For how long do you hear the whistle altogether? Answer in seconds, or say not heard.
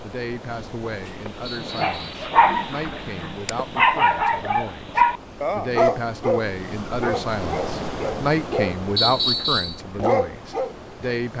2 s.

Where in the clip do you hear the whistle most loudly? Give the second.
9 s.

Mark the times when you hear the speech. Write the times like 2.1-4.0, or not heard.
0.0-11.3.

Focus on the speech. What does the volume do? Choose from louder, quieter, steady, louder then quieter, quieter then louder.
louder.